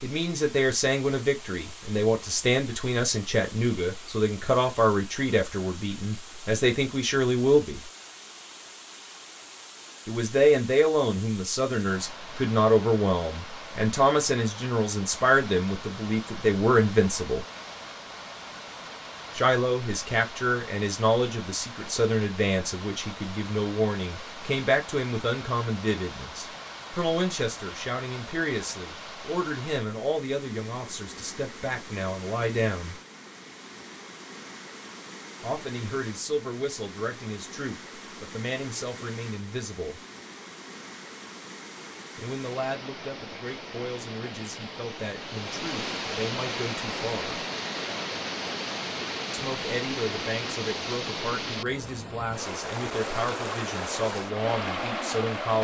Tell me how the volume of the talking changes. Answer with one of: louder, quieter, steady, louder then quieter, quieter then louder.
quieter.